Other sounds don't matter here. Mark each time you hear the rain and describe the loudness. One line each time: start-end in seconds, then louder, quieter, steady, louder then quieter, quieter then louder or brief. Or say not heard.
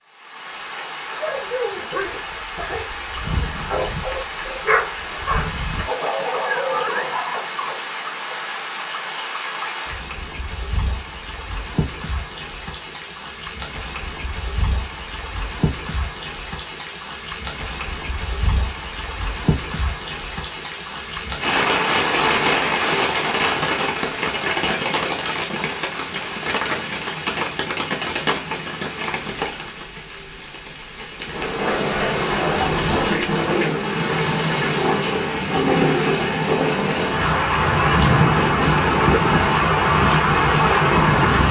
0.1-41.4 louder.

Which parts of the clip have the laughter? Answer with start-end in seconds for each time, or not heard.
not heard.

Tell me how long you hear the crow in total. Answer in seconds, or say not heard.
not heard.